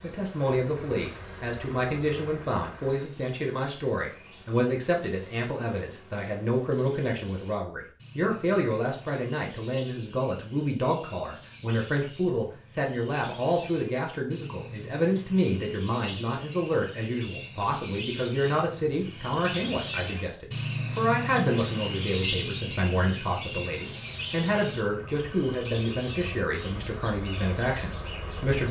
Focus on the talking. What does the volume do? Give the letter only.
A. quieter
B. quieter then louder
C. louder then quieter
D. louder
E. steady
E.